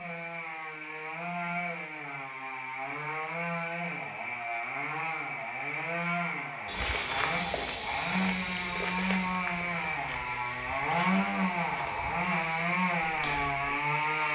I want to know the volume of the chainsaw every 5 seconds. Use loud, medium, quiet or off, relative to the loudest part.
medium, loud, loud.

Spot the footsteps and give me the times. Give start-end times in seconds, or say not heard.
6.7-13.8.